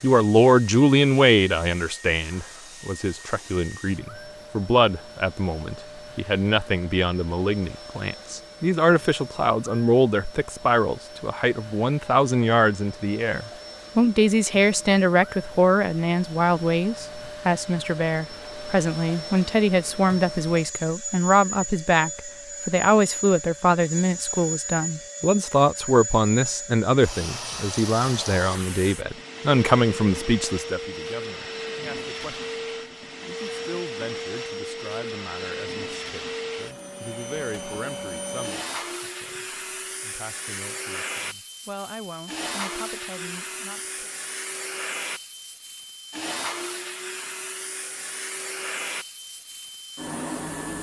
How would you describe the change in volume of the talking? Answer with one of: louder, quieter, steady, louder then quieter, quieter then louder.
quieter.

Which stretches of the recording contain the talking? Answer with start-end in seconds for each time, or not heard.
0.0-32.5, 33.2-44.1.